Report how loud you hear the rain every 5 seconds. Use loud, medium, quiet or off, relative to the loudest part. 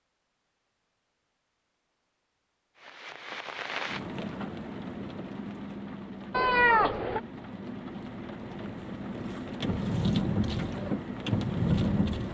medium, medium, loud.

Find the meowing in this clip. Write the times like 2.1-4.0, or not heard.
6.3-7.2.